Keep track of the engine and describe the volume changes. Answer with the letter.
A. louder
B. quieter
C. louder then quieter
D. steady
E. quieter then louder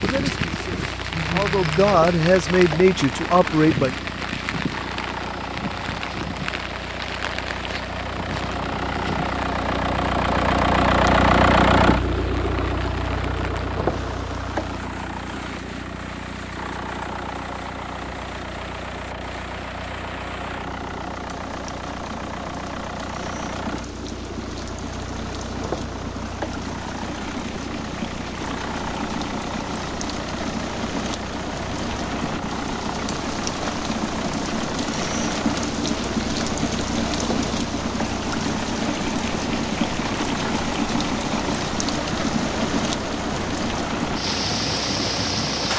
C.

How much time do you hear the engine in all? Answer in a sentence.
You can hear the engine for 46 seconds altogether.